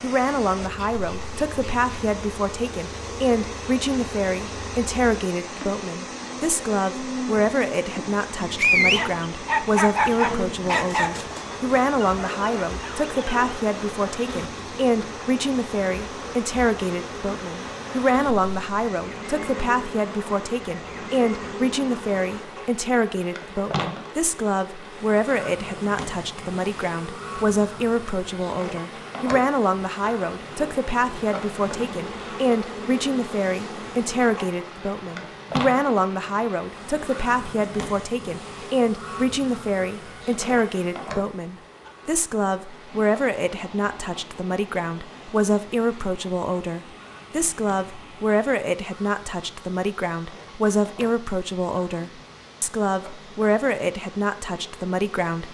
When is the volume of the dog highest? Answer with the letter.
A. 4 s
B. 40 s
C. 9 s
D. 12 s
C.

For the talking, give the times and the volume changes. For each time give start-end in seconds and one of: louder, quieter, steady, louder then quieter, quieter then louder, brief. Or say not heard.
0.0-55.4 steady.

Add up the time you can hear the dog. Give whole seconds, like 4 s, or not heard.
5 s.